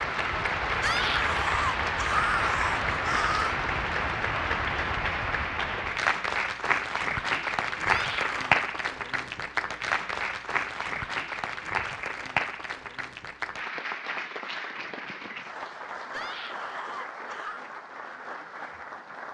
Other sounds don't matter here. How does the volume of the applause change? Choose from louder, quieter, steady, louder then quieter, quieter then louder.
quieter.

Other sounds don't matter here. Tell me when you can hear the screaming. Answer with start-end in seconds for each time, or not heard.
0.8-3.6, 7.8-8.6, 16.1-17.6.